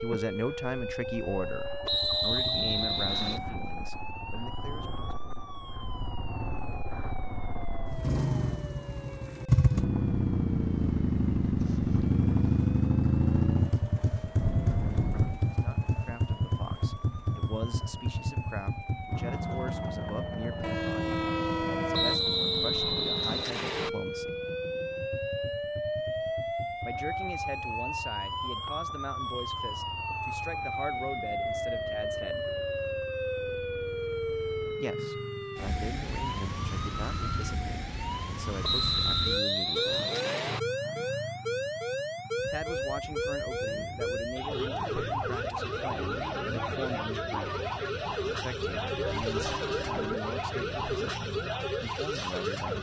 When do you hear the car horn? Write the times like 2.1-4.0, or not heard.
14.4-15.4, 20.6-22.3, 49.0-50.2.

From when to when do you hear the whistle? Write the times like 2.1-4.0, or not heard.
1.9-3.4, 21.9-23.9, 38.6-40.6.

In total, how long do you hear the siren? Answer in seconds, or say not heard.
53 s.